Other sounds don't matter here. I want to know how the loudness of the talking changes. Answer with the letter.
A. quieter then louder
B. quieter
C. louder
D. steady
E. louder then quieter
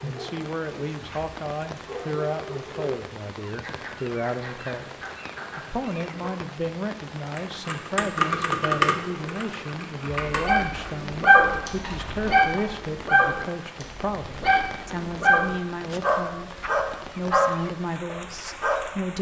D.